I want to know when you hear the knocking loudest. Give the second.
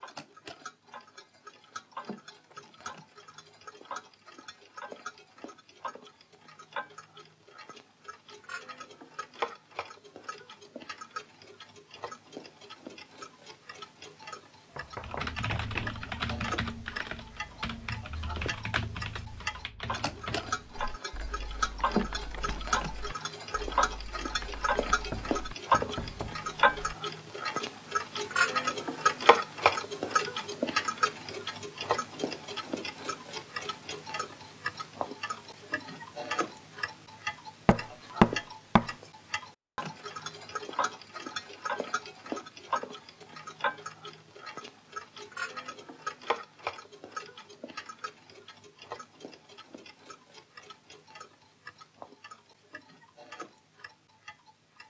38 s.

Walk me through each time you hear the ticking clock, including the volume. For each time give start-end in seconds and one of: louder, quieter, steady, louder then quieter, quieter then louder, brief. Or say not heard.
0.0-54.8 louder then quieter.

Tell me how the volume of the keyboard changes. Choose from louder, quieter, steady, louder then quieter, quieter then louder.
quieter.